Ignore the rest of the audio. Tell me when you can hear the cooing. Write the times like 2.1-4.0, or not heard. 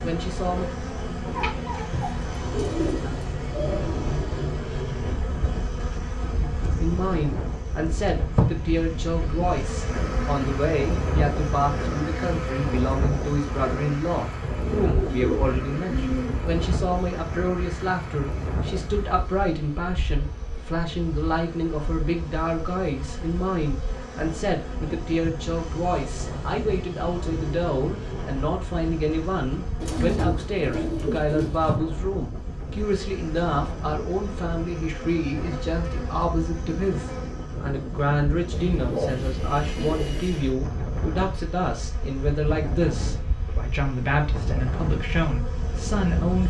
1.2-4.1, 14.4-16.4, 29.8-31.8, 38.5-40.5.